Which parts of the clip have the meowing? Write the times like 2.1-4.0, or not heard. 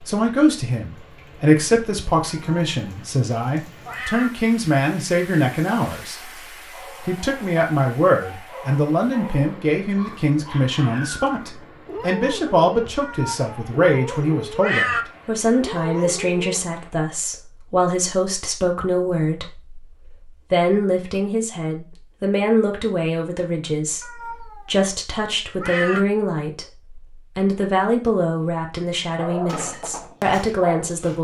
2.2-3.0, 3.9-4.3, 13.0-13.7, 14.6-15.1, 24.0-24.7, 25.6-26.1.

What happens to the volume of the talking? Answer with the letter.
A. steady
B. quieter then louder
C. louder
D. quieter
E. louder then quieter
A.